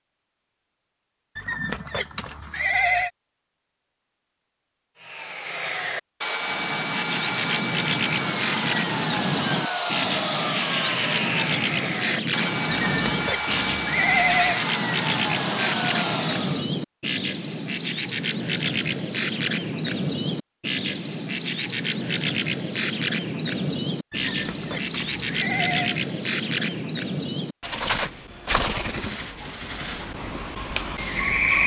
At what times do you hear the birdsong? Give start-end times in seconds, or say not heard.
6.4-31.6.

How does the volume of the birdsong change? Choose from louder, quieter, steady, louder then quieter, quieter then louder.
steady.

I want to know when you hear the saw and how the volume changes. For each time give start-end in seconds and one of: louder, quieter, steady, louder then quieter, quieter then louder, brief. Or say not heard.
5.0-16.7 steady.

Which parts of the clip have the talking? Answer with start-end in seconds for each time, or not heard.
not heard.